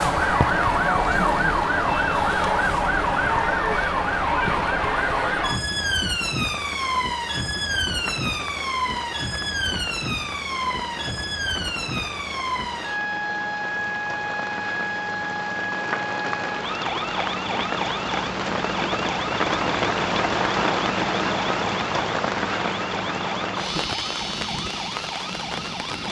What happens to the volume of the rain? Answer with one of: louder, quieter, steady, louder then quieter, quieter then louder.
louder.